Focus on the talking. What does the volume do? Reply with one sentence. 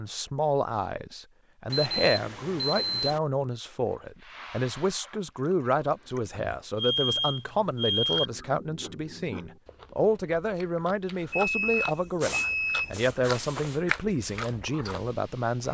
The volume of the talking stays about the same.